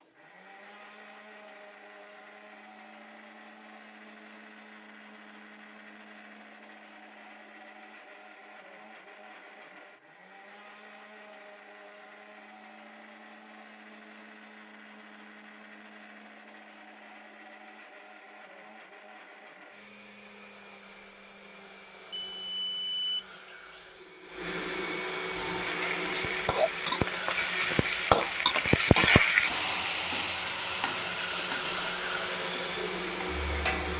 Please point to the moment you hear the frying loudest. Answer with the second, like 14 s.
29 s.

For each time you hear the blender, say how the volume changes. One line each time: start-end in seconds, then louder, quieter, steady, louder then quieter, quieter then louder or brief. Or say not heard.
0.0-33.9 louder.